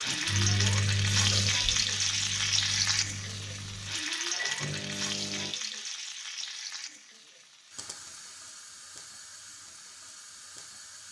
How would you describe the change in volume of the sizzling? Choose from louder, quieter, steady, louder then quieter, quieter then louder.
quieter.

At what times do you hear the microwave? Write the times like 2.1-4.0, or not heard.
0.1-5.5.